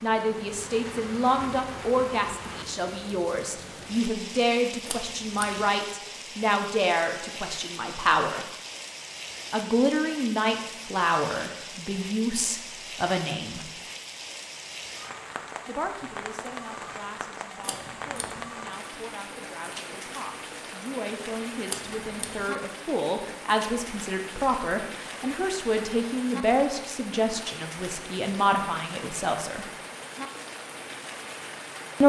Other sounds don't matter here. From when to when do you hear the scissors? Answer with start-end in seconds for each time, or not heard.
4.8-5.7, 17.6-18.4, 21.6-22.4.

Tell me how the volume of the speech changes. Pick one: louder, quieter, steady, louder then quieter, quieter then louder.
quieter then louder.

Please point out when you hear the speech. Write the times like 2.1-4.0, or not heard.
0.0-8.4, 9.5-13.7, 15.7-29.7.